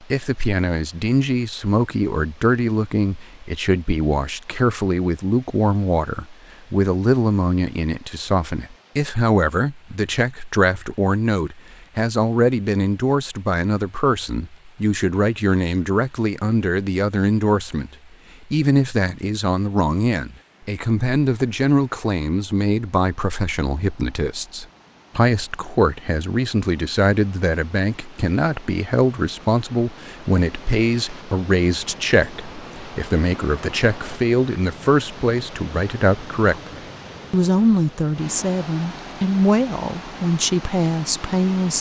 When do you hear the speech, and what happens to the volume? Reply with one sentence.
You can hear the speech from 0.1 to 17.9 s, at a steady volume; and from 18.5 to 41.7 s, at a steady volume.